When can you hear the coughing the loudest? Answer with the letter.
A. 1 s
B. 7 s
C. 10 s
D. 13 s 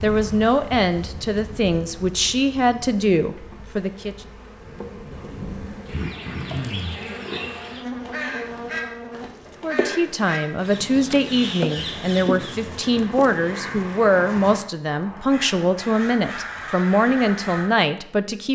B.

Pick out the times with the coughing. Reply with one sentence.
You can hear the coughing from 5.9 to 7.0 s and from 11.8 to 12.8 s.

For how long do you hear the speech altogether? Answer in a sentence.
The speech can be heard for 13 seconds in total.